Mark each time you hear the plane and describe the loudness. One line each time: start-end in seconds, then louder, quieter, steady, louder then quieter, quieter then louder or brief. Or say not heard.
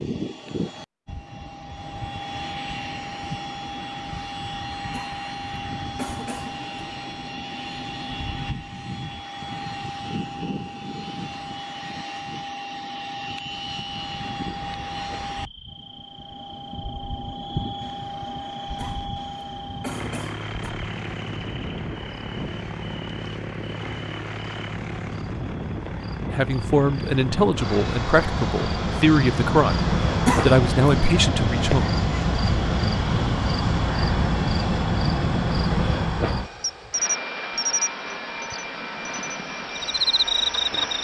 0.0-41.0 steady.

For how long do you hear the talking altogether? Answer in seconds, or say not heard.
6 s.